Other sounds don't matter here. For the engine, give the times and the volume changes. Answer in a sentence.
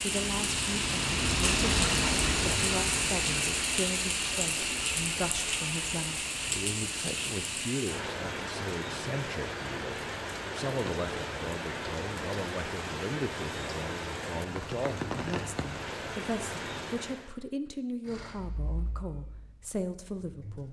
You can hear the engine from 0.0 to 7.7 s, getting quieter; and briefly from 18.0 to 20.6 s.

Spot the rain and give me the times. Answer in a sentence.
The rain can be heard from 0.0 to 17.4 s.